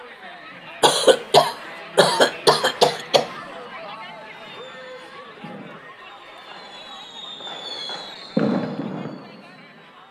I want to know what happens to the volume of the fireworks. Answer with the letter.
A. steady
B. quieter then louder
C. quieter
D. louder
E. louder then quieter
D.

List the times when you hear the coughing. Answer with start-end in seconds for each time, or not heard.
0.8-3.3.